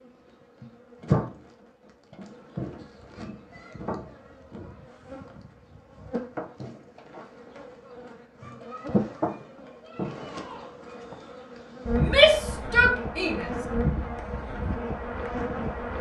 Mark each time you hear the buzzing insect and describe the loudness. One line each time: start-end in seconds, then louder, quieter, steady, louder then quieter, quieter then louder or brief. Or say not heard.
0.0-15.9 quieter then louder.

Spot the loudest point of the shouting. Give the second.
12 s.